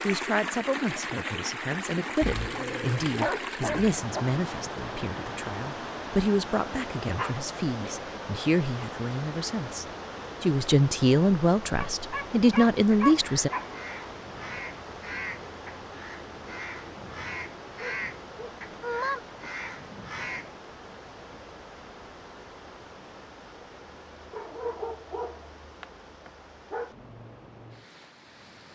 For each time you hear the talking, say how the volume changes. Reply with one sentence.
You can hear the talking from 0.0 to 13.5 s, getting louder.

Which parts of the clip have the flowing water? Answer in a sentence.
The flowing water can be heard from 0.0 to 28.7 s.